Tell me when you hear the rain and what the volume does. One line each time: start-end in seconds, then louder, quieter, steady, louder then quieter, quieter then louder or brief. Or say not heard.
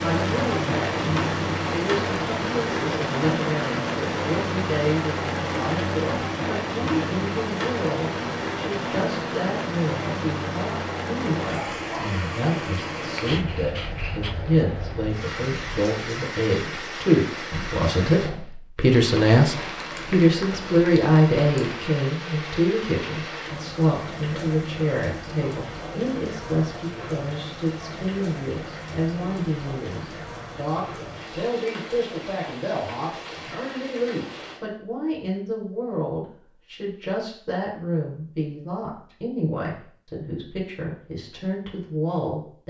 0.0-34.6 quieter.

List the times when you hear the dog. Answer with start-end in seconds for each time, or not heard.
12.8-14.3.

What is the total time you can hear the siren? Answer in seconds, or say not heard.
not heard.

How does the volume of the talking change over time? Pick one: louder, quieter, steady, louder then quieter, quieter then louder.
louder then quieter.